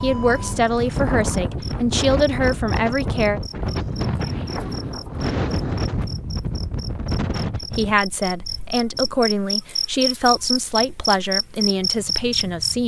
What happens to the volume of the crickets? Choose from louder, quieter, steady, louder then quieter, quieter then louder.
louder.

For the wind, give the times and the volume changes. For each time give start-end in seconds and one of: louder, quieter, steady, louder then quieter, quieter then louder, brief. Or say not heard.
0.0-12.8 quieter.